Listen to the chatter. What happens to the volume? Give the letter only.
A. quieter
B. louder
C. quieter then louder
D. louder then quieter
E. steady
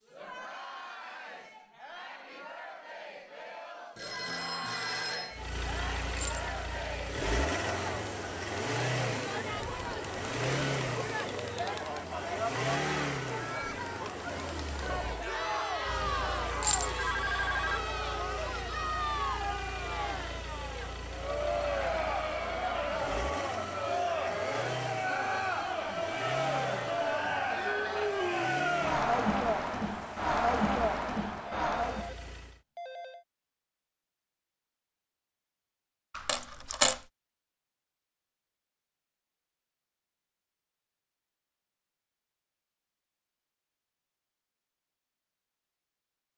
B.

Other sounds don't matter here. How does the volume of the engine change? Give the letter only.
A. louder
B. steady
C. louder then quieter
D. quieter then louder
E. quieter
E.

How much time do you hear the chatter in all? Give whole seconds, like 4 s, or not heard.
32 s.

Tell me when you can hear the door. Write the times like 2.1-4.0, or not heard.
not heard.